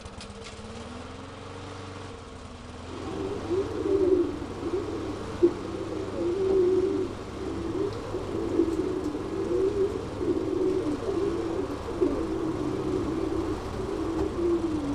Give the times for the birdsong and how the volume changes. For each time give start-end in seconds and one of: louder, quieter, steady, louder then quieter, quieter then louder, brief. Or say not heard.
2.9-14.9 steady.